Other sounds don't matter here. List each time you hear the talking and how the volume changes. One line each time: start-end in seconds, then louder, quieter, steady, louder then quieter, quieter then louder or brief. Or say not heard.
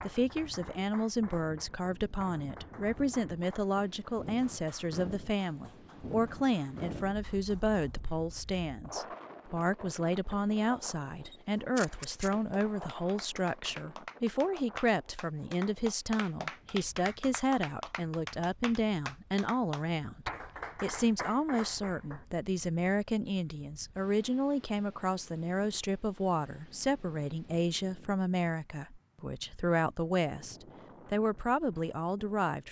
0.0-32.6 steady.